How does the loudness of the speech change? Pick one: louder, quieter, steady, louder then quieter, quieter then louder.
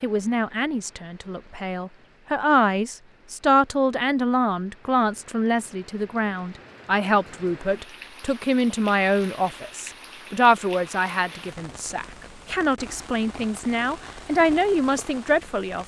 steady.